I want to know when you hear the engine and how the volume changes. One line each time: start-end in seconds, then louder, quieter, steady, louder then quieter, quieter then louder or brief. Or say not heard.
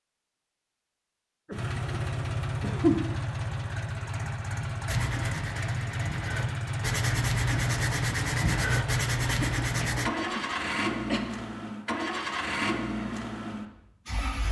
1.5-14.4 steady.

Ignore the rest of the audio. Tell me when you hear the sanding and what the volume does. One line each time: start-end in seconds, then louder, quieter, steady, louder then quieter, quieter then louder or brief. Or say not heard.
4.8-10.1 louder.